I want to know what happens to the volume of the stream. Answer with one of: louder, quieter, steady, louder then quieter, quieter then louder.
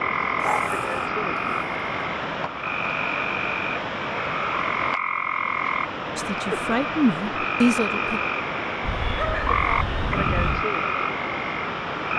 steady.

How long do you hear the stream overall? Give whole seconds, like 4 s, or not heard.
12 s.